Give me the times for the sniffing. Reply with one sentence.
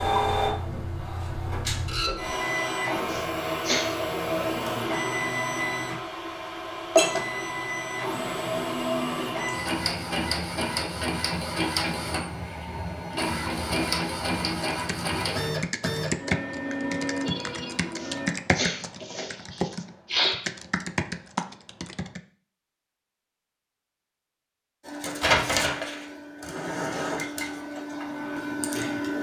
The sniffing can be heard from 3.1 to 4.0 s and from 18.0 to 20.4 s.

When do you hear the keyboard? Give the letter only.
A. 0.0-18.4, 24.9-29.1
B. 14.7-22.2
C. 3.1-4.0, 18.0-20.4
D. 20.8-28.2
B.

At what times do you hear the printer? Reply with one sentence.
You can hear the printer from 0.0 to 18.4 s and from 24.9 to 29.1 s.